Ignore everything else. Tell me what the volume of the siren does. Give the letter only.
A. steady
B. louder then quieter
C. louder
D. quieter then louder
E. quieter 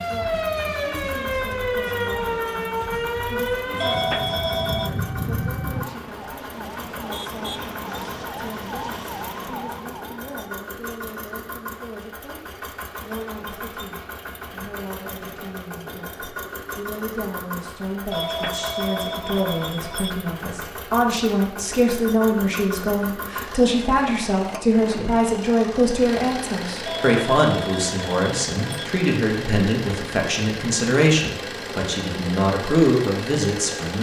E.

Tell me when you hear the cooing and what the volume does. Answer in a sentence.
You can't hear the cooing here.